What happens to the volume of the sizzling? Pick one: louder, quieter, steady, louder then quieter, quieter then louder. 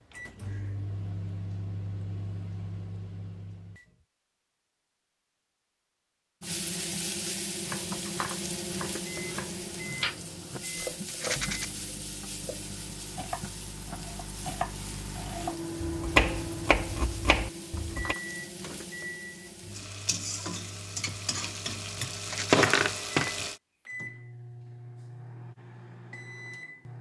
quieter then louder.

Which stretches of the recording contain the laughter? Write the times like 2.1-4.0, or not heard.
not heard.